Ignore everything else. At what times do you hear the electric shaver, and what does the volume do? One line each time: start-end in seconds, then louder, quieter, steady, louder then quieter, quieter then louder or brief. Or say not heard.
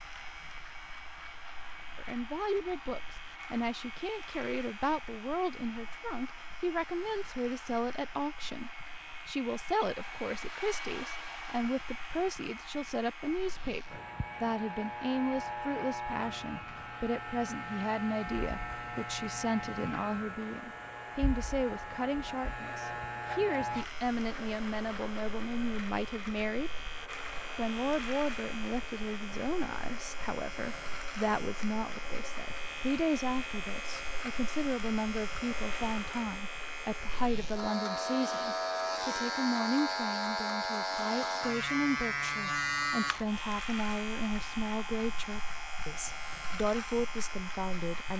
0.0-48.1 louder.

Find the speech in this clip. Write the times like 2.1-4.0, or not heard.
1.9-26.7, 27.6-48.1.